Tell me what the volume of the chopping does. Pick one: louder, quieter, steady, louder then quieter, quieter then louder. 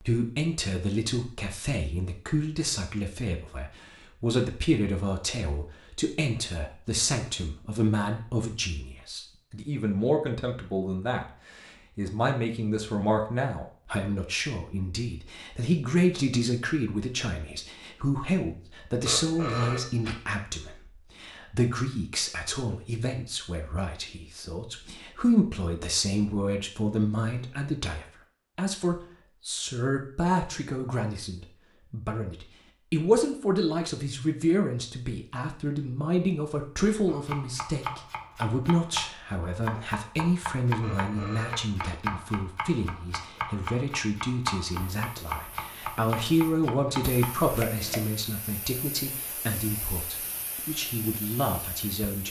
steady.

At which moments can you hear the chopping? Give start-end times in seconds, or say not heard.
37.0-48.1.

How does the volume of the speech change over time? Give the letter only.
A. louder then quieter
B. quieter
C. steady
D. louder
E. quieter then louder
C.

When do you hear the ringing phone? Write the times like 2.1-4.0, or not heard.
19.1-20.2, 40.8-42.0.